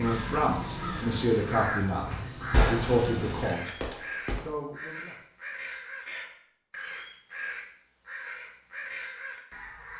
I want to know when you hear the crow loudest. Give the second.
2 s.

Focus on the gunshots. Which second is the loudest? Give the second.
3 s.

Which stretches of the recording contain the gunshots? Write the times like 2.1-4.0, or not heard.
2.5-4.5.